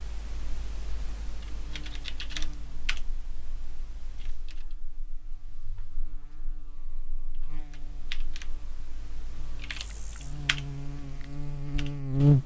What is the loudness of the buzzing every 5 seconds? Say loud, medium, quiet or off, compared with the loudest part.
quiet, quiet, loud.